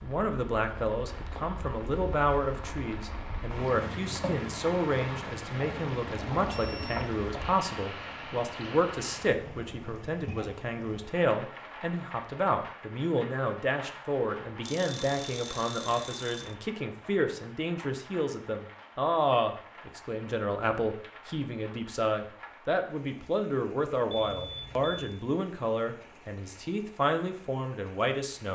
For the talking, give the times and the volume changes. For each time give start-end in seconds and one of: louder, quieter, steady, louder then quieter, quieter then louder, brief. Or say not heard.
0.0-28.5 steady.